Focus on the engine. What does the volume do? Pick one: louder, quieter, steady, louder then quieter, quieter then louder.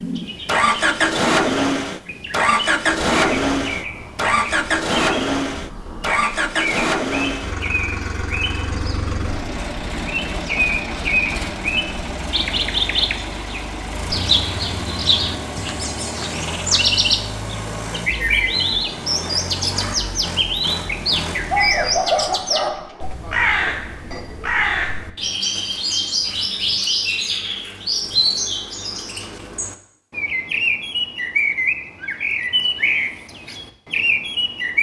quieter.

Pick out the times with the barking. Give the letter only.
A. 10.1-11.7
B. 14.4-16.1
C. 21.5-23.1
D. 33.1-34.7
C.